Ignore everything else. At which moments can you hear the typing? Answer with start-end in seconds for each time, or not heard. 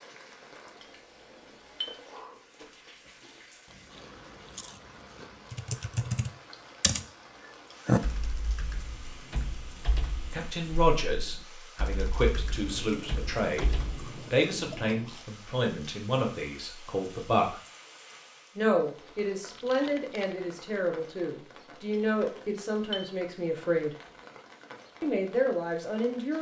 5.5-7.0, 7.8-14.1.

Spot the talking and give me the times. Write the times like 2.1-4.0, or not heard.
10.2-17.6, 18.6-23.9, 25.0-26.3.